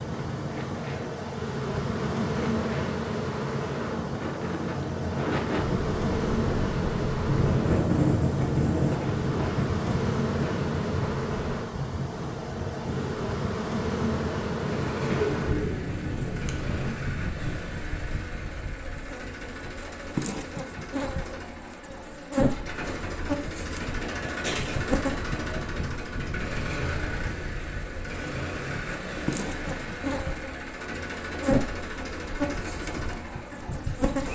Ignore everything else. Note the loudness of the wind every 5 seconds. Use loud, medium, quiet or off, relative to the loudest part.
medium, loud, medium, medium, off, off, off.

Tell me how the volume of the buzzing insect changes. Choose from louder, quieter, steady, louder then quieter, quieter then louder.
steady.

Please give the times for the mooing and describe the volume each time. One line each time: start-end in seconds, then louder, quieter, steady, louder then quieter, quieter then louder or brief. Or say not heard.
not heard.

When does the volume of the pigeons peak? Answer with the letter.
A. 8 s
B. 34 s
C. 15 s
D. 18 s
C.